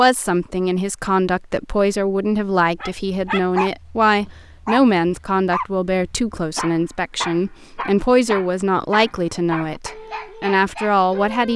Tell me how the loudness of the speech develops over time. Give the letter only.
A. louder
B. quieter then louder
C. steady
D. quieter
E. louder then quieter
C.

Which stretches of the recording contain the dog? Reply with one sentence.
You can hear the dog from 2.8 to 11.5 s.